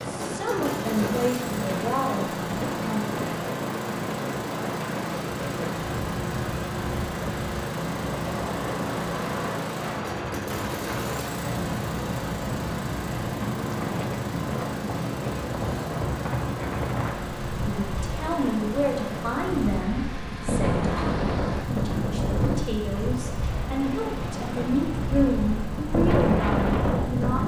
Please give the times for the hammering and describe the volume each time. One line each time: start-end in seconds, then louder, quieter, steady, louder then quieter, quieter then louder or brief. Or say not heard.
not heard.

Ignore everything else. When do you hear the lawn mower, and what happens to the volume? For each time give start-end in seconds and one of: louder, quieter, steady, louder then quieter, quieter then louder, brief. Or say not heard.
0.0-27.4 quieter.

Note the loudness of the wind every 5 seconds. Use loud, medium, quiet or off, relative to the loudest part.
medium, medium, medium, medium, loud, loud.